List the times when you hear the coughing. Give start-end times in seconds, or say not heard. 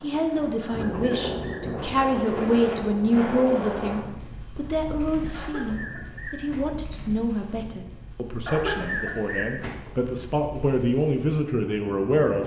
0.6-1.8, 5.3-6.6, 8.4-10.1.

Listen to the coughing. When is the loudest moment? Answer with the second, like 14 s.
9 s.